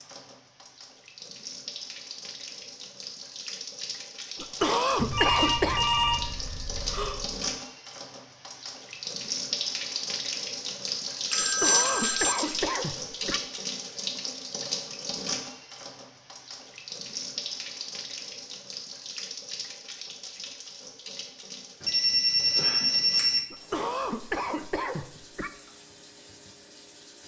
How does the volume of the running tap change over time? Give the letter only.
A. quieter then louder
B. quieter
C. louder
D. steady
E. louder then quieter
E.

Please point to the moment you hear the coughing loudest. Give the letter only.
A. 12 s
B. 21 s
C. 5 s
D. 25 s
C.